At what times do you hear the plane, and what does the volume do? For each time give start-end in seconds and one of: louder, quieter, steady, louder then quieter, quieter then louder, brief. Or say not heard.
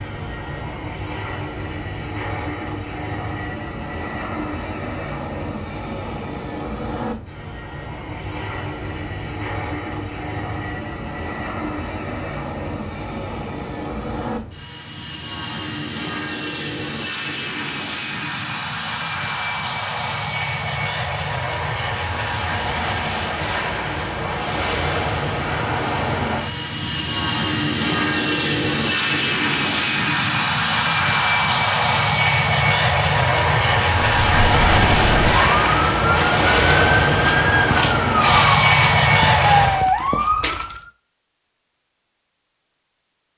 0.0-39.9 louder.